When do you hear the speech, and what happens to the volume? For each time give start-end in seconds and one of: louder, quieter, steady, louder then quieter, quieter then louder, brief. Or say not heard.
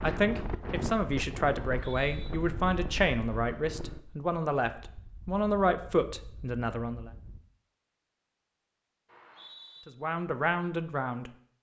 0.0-7.1 steady
9.8-11.3 brief.